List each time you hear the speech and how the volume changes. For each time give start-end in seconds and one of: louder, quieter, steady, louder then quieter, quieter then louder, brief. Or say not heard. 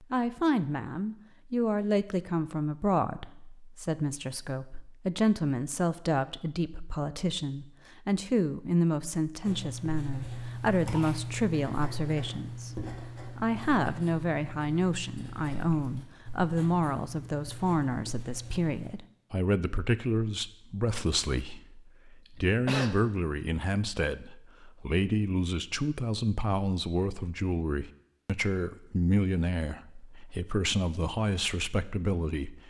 0.0-32.6 steady.